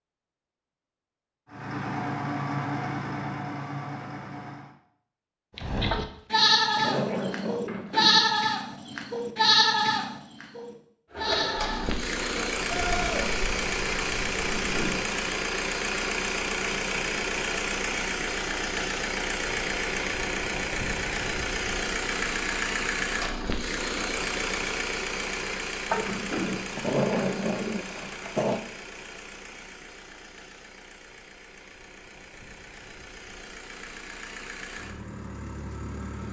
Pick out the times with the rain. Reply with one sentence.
The rain can't be heard in this clip.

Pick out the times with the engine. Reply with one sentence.
The engine can be heard from 1.4 to 4.8 s and from 11.1 to 36.2 s.